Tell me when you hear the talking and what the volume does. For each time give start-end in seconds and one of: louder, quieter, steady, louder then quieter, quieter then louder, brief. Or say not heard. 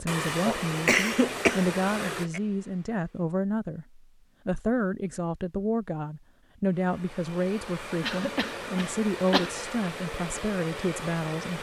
0.0-11.5 steady.